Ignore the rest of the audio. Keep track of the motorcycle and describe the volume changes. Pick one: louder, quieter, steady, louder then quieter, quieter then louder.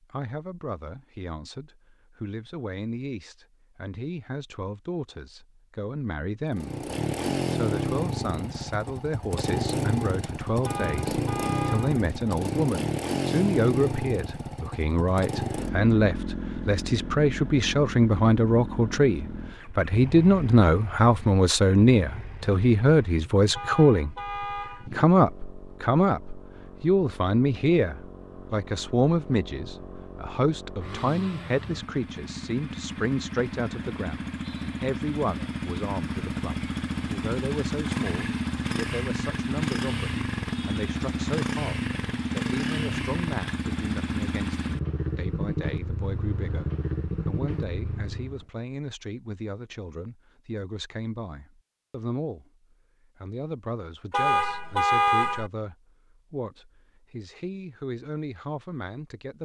quieter then louder.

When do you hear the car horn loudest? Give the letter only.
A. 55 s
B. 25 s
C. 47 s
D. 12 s
A.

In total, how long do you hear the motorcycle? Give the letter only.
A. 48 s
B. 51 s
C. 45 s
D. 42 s
D.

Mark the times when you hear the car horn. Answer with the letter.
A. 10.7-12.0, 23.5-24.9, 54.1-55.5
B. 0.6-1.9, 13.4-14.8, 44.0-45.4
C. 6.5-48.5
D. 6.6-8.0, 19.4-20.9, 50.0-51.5
A.